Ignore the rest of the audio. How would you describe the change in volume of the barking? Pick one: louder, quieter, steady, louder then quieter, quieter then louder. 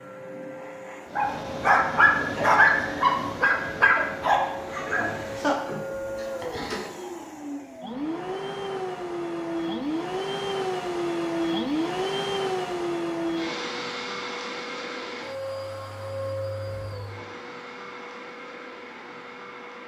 quieter.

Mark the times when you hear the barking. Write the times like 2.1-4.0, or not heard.
1.1-6.8.